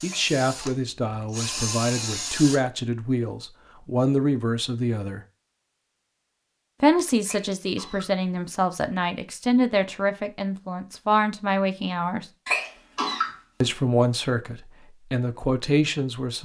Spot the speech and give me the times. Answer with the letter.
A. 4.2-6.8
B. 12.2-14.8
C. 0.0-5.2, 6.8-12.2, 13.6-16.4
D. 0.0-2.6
C.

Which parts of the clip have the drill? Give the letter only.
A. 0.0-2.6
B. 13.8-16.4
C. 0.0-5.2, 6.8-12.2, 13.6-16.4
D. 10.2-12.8
A.